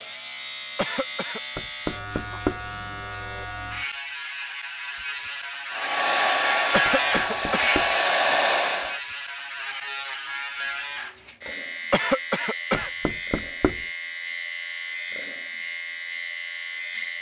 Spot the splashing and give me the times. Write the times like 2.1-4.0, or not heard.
not heard.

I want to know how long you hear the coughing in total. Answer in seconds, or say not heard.
3 s.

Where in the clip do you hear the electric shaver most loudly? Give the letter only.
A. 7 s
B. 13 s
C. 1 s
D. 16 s
A.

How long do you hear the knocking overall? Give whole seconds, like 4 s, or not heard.
3 s.